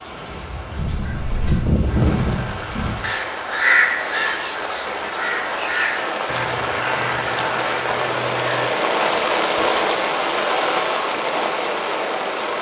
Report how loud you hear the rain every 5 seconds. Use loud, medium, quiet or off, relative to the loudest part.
medium, loud, loud.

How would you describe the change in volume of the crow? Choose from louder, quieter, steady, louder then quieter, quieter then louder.
quieter.